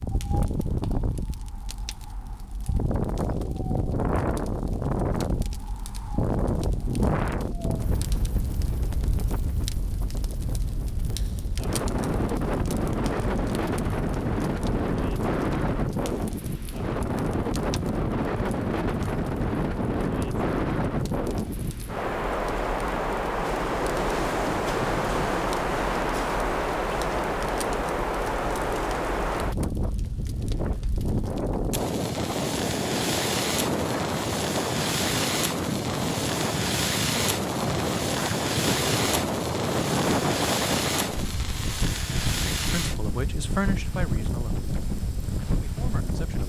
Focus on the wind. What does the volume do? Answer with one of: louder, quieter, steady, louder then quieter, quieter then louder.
steady.